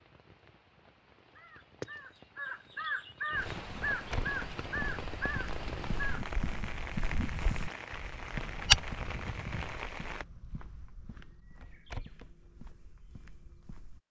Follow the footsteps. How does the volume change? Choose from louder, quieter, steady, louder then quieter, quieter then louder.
louder then quieter.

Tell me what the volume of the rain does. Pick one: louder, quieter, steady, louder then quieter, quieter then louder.
louder.